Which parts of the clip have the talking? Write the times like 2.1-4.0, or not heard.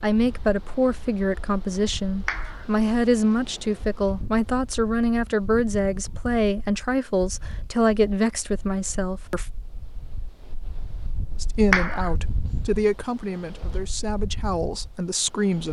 0.0-9.4, 11.4-15.6.